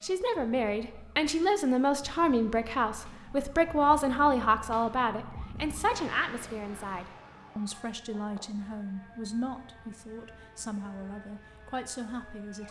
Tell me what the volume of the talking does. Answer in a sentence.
The loudness of the talking goes down.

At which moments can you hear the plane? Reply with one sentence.
You can't hear the plane here.